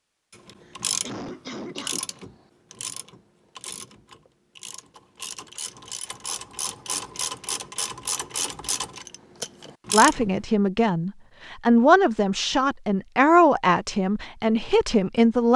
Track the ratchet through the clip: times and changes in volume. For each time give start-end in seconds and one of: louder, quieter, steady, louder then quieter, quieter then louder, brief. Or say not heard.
0.3-10.3 quieter then louder.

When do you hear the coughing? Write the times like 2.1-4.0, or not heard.
0.6-2.1.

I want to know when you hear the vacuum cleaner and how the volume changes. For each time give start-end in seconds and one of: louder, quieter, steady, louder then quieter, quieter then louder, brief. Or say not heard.
not heard.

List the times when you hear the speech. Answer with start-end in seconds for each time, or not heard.
9.9-15.5.